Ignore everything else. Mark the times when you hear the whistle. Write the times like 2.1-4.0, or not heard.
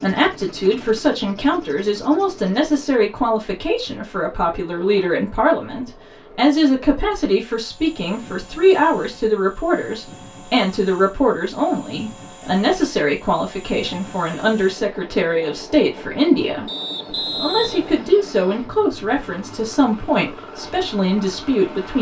16.6-18.1.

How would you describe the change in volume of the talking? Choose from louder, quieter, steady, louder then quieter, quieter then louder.
steady.